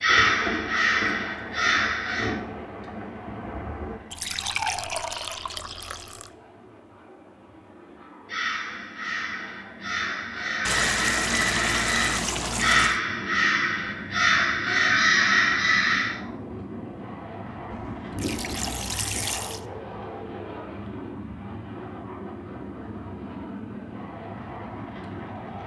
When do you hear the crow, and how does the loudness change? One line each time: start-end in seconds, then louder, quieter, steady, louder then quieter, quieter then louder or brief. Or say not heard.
0.0-2.4 brief
8.2-16.2 louder.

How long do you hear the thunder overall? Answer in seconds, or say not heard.
6 s.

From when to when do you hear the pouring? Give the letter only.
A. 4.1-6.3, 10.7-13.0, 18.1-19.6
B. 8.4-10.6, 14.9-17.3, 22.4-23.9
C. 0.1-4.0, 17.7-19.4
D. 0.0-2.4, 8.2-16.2
A.